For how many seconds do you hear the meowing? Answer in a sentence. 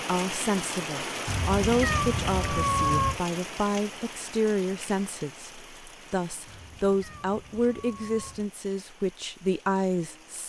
The meowing can be heard for 4 seconds in total.